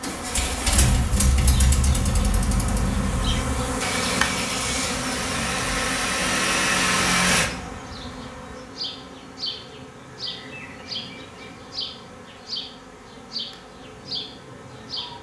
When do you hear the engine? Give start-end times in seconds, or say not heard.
0.0-7.5.